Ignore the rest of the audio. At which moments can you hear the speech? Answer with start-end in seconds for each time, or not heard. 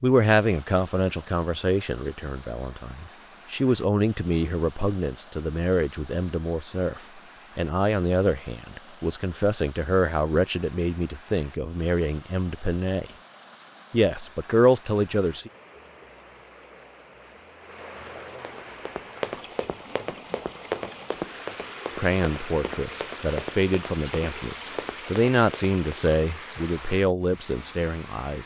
0.0-13.1, 13.9-15.5, 21.9-28.4.